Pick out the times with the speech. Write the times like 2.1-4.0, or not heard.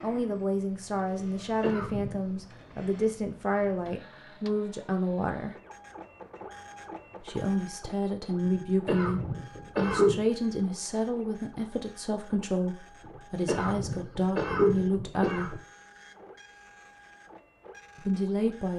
0.0-5.5, 7.2-15.6, 17.9-18.7.